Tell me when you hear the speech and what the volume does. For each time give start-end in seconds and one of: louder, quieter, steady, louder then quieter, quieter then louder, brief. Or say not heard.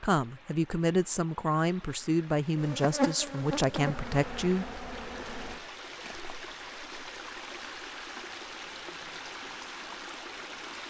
0.0-4.7 steady.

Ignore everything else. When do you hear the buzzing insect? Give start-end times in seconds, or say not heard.
2.5-5.7.